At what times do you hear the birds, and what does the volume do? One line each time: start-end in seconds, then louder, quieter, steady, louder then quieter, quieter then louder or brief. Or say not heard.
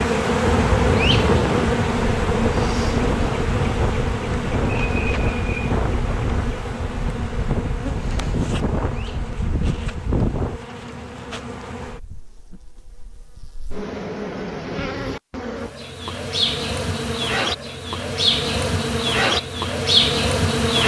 not heard.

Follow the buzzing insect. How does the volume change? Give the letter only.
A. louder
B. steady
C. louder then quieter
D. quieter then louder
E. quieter
D.